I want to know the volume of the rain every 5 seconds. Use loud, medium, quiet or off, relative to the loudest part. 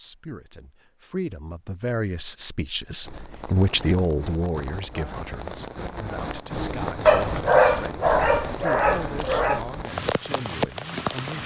medium, loud, medium.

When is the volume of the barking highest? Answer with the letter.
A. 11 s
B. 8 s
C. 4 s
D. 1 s
B.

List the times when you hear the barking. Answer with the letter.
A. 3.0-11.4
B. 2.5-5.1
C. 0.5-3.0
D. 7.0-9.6
D.